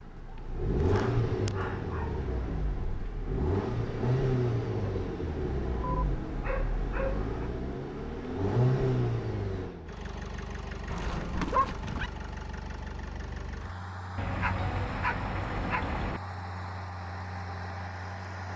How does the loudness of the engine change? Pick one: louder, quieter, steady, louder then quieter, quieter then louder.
quieter.